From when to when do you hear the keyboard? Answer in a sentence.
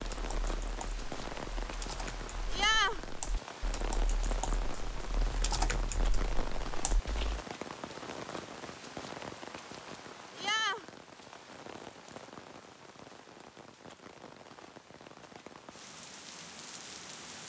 You can hear the keyboard from 0.0 to 7.5 s.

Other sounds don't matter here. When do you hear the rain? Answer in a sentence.
The rain can be heard from 0.0 to 17.4 s.